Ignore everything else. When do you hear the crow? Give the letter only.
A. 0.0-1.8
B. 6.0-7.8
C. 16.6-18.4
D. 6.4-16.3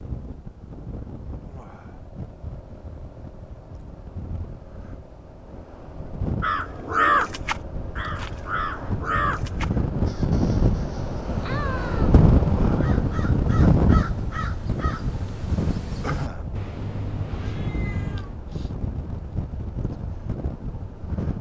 D.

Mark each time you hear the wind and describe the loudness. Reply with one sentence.
You can hear the wind from 0.0 to 21.3 s, getting louder then quieter.